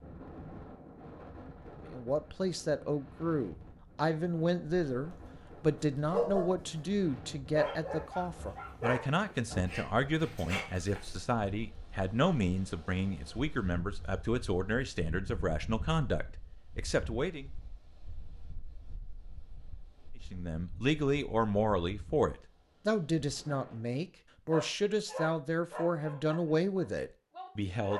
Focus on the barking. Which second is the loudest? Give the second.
6 s.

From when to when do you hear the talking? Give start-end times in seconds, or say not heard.
1.8-17.5, 20.3-27.9.